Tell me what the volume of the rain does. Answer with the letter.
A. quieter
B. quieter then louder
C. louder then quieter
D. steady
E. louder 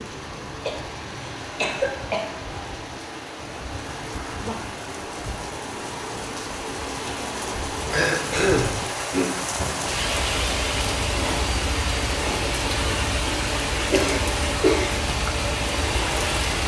E.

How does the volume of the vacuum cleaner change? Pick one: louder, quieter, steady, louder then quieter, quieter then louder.
steady.